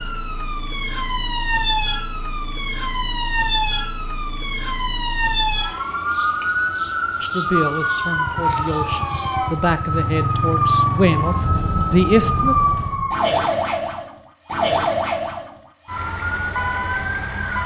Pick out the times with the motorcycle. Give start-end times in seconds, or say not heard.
8.2-13.1.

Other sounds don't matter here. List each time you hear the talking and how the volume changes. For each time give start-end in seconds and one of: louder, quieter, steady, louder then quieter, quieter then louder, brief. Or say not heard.
7.2-12.6 louder.